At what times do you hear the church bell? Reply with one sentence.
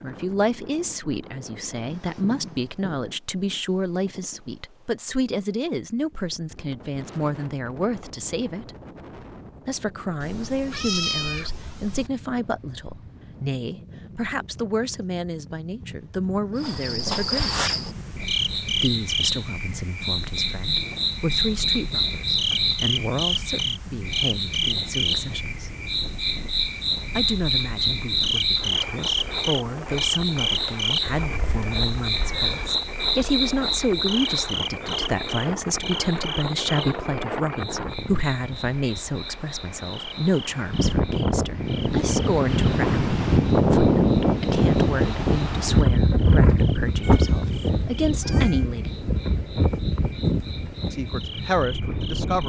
You can't hear the church bell here.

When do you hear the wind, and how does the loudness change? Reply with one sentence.
You can hear the wind from 0.0 to 52.4 s, getting louder.